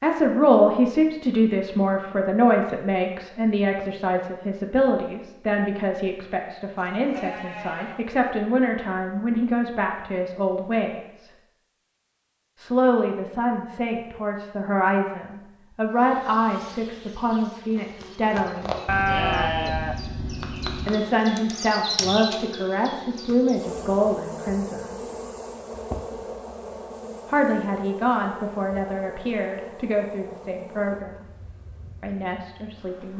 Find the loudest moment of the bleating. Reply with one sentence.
The volume of the bleating peaks at 19 seconds.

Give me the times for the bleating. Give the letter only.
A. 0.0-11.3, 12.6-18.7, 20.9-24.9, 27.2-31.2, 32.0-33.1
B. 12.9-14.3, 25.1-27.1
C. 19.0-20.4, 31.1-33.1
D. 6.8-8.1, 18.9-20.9
D.